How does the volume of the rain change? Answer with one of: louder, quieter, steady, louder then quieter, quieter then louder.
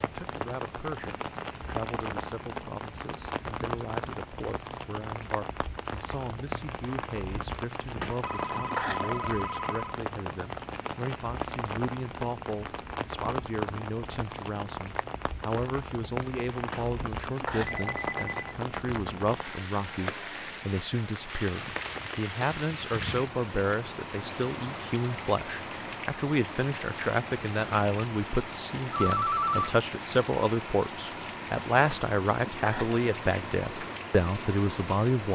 steady.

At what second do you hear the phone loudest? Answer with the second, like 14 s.
29 s.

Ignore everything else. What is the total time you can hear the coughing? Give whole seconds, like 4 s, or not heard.
4 s.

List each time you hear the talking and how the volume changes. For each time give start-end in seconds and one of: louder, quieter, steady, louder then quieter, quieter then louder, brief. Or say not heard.
0.0-35.2 louder.